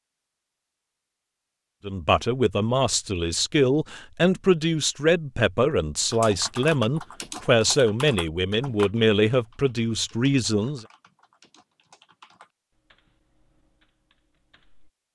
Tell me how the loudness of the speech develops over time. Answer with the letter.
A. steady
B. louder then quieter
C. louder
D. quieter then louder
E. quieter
A.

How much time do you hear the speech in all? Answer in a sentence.
You can hear the speech for 9 seconds altogether.